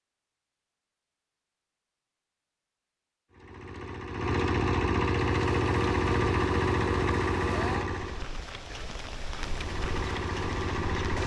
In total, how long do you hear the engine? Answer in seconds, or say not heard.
7 s.